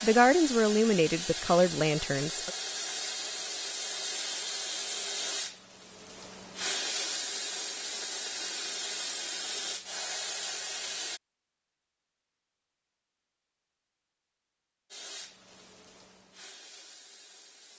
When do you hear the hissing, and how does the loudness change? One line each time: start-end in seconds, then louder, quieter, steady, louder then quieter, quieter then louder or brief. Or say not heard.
0.0-11.2 steady
14.9-17.7 brief.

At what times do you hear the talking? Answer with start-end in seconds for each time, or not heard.
0.0-2.5.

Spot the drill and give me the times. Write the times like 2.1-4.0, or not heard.
not heard.